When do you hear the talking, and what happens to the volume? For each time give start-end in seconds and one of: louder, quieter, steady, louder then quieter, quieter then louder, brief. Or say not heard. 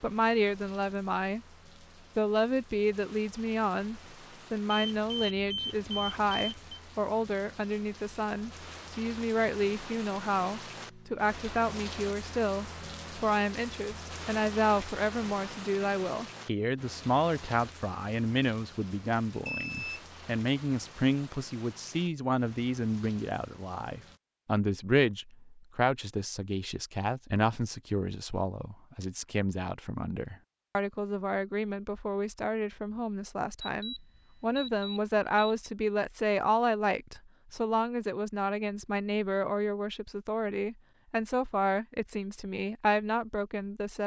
0.0-1.4 brief
2.1-44.0 steady.